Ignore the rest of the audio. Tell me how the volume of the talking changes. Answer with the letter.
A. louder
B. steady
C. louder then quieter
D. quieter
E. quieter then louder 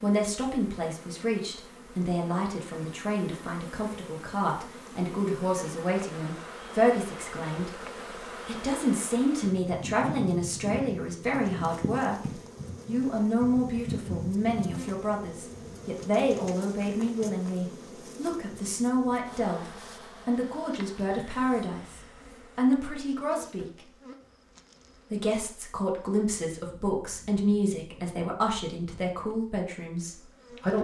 B.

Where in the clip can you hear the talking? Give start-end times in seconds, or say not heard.
0.0-7.8, 8.4-23.6, 25.1-30.7.